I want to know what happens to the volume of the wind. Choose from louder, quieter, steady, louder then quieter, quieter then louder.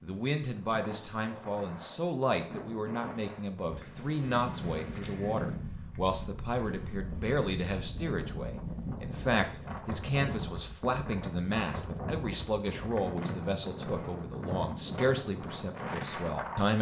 louder.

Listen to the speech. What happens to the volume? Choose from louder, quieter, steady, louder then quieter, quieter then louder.
steady.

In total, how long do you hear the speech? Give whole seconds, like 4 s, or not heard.
17 s.